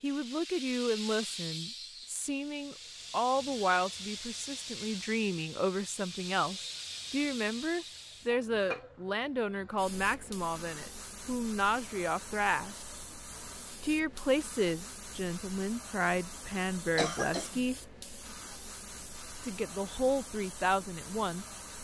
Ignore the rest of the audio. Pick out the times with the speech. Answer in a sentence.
The speech can be heard from 0.0 to 12.8 s, from 13.8 to 17.8 s and from 19.4 to 21.4 s.